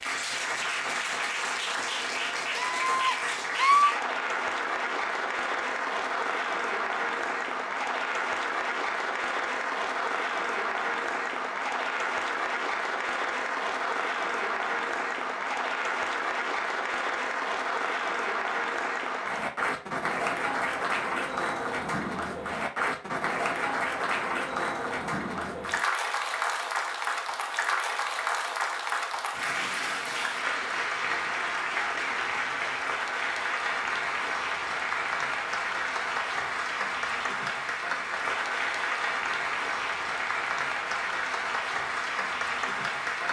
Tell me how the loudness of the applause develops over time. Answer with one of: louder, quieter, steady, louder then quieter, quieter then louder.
steady.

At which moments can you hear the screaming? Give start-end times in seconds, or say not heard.
2.5-3.9.